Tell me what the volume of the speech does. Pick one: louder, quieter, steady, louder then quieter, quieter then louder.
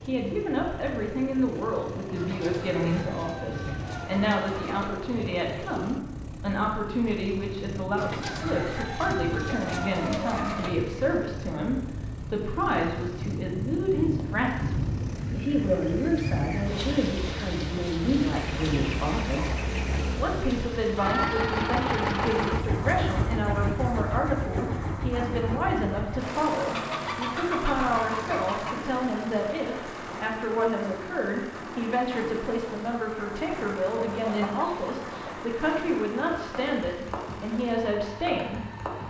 steady.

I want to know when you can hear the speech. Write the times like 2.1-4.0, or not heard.
0.1-19.6, 20.1-38.6.